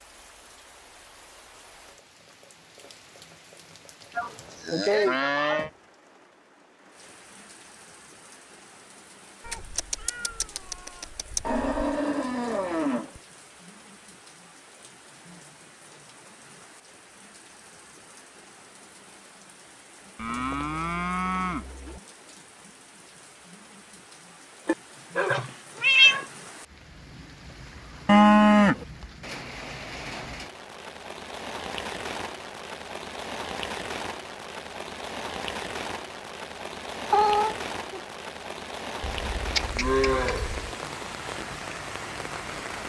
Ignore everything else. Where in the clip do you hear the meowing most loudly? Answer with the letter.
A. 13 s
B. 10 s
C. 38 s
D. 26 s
D.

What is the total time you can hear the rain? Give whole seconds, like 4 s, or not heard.
43 s.